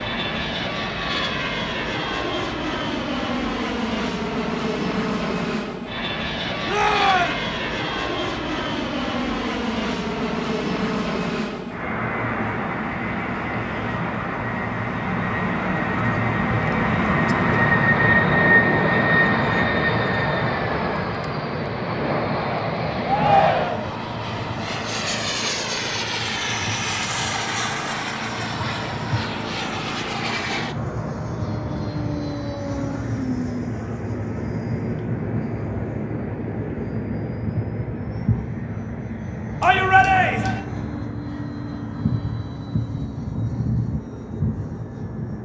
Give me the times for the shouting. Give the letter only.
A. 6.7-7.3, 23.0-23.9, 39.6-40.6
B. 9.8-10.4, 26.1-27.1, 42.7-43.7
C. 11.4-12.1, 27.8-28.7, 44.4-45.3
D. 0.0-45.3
A.